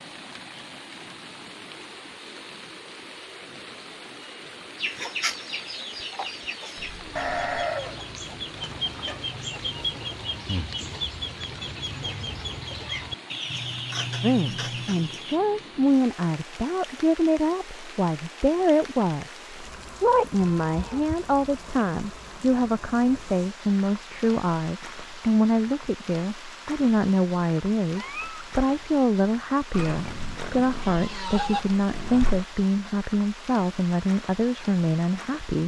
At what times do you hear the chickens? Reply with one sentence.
The chickens can be heard from 4.8 to 15.4 s.